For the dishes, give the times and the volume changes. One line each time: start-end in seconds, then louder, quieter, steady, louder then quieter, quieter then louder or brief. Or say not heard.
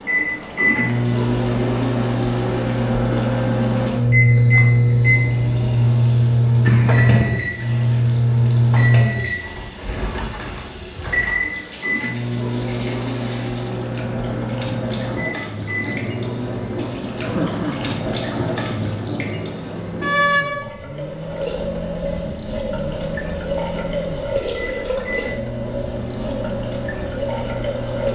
not heard.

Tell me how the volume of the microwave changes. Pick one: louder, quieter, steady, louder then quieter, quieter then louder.
quieter.